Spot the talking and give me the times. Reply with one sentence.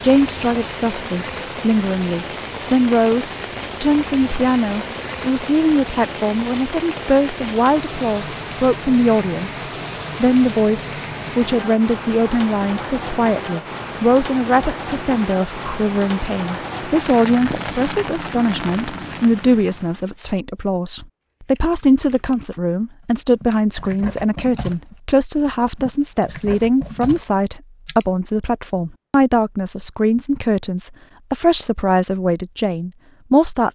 You can hear the talking from 0.0 to 33.7 s.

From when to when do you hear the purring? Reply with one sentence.
You can't hear the purring here.